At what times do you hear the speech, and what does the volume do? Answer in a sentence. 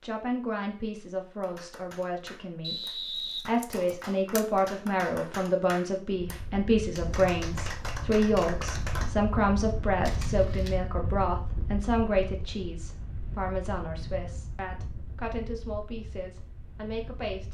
You can hear the speech from 0.0 to 17.4 s, getting louder then quieter.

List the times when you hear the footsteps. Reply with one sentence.
You can't hear the footsteps here.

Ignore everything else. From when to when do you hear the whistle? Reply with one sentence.
You can hear the whistle from 2.6 to 4.1 s.